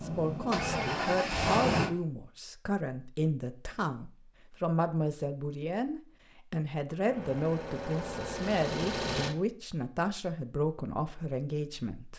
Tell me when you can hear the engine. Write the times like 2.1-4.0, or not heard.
0.0-1.9, 7.0-9.3.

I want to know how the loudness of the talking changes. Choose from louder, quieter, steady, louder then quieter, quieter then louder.
steady.